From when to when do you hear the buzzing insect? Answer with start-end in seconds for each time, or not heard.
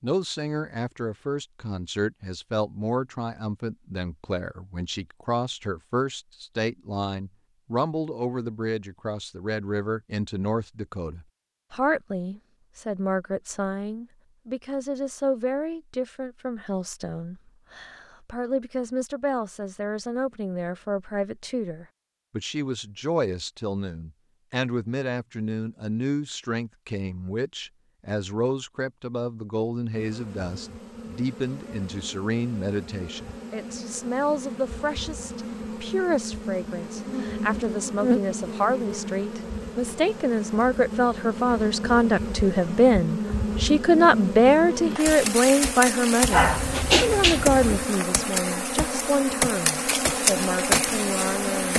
29.9-51.7.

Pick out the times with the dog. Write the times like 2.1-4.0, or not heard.
46.3-47.9.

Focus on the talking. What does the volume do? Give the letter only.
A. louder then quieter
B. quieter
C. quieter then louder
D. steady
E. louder
E.